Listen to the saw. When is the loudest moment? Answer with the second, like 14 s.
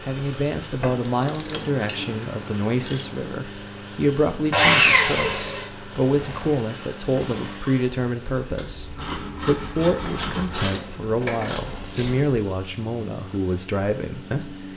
5 s.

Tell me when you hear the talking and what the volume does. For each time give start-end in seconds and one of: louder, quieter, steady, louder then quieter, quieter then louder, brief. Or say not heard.
0.1-14.7 steady.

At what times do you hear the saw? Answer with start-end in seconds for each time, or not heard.
4.5-5.7, 8.6-10.7.